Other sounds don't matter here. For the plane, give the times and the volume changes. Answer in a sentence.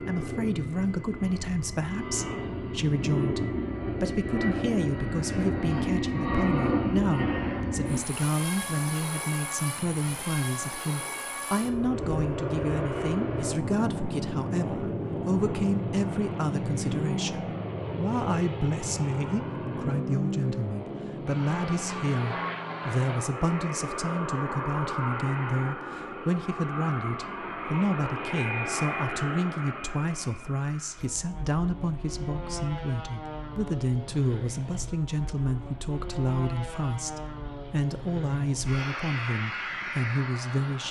The plane can be heard from 0.0 to 40.8 s, getting quieter.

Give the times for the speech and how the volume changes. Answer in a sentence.
You can hear the speech from 0.0 to 40.8 s, at a steady volume.